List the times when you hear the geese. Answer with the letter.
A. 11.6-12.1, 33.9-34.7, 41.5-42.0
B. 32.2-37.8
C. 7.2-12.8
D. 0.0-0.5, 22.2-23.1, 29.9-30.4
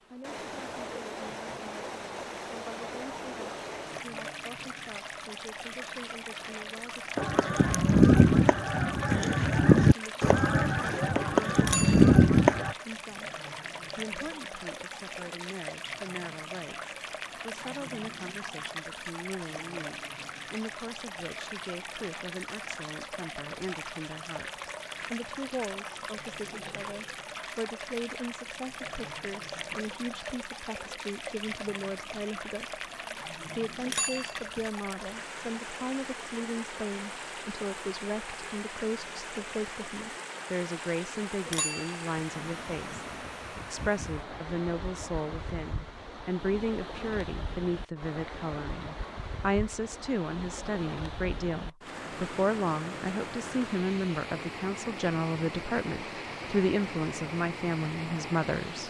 C.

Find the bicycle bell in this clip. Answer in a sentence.
You can hear the bicycle bell from 11.6 to 12.1 s, from 33.9 to 34.7 s and from 41.5 to 42.0 s.